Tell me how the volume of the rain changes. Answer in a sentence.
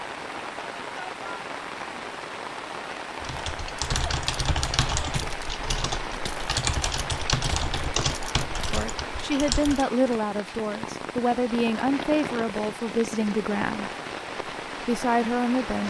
The loudness of the rain stays about the same.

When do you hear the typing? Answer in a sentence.
The typing can be heard from 3.2 to 10.2 s.